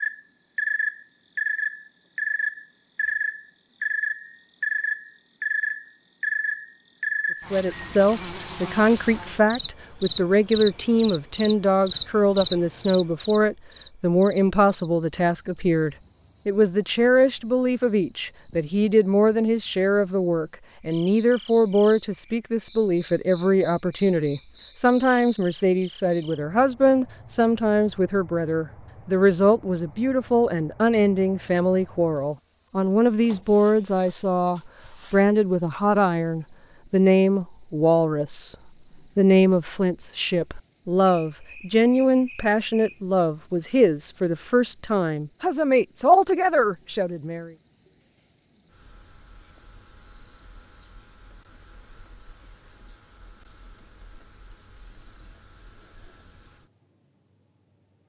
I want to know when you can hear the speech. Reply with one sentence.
The speech can be heard from 7.4 to 38.5 s and from 39.1 to 47.5 s.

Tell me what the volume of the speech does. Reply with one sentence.
The loudness of the speech stays about the same.